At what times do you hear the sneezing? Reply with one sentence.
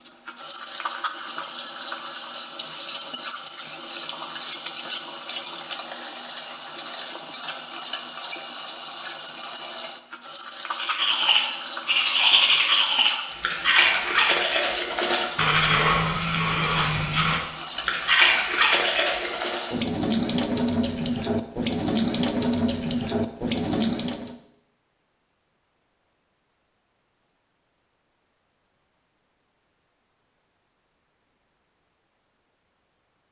The sneezing can't be heard in this clip.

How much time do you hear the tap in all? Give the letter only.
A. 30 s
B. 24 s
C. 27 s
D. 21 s
B.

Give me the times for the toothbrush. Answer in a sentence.
You can hear the toothbrush from 10.7 to 19.7 s.